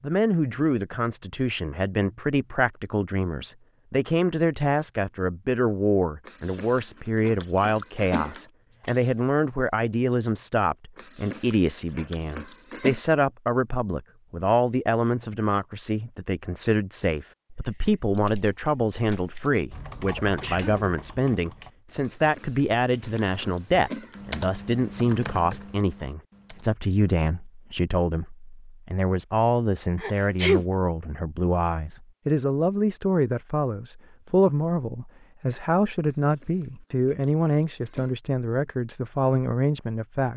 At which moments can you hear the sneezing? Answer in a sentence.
You can hear the sneezing from 8.8 to 9.6 s, from 20.1 to 20.9 s and from 30.0 to 30.6 s.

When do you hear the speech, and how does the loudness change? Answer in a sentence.
The speech can be heard from 0.0 to 40.3 s, at a steady volume.